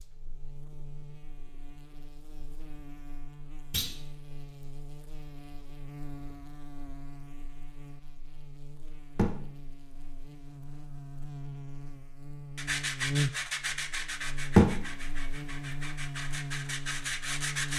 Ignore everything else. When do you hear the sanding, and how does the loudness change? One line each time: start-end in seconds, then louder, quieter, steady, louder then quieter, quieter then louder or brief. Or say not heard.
12.6-17.7 quieter then louder.